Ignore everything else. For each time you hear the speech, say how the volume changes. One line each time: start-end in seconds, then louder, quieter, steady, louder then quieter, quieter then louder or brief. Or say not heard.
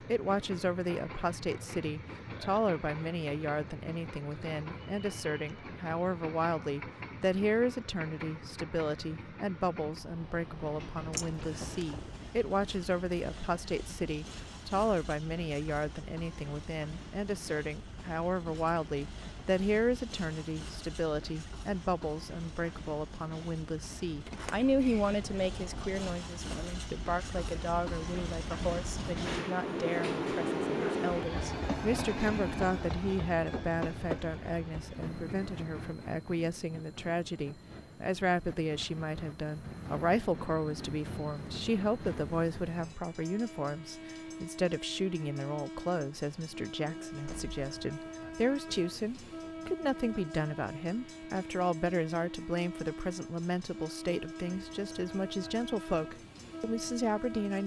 0.0-57.6 steady.